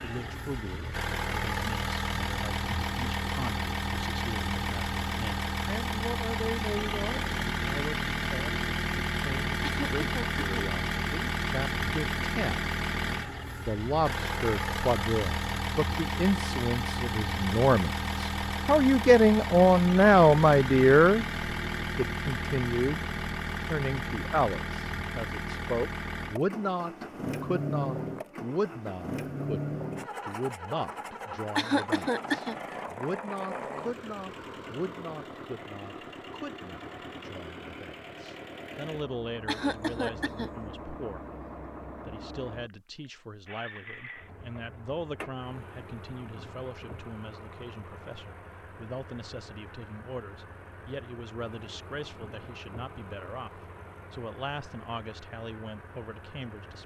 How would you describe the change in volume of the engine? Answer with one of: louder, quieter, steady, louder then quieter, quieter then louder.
quieter.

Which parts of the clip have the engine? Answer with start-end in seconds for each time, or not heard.
0.0-56.8.